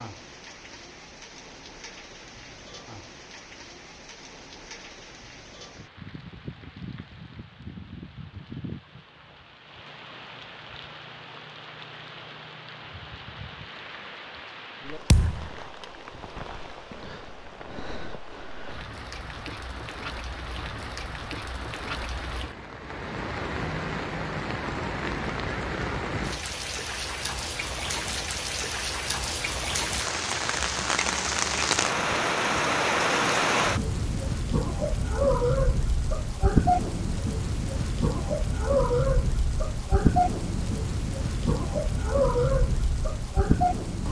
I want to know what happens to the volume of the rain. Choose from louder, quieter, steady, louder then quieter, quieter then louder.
louder.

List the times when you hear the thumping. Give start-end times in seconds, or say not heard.
15.1-15.5.